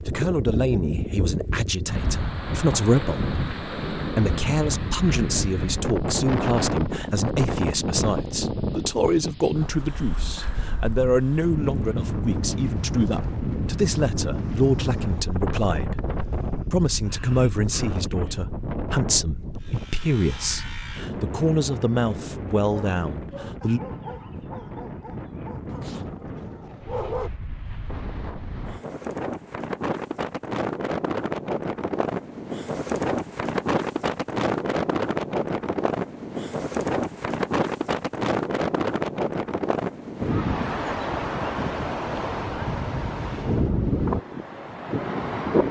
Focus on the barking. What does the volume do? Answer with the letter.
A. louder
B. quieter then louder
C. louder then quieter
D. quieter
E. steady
D.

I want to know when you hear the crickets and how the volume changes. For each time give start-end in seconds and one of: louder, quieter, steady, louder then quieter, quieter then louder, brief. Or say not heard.
not heard.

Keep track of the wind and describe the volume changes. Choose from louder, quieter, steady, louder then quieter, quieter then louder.
quieter then louder.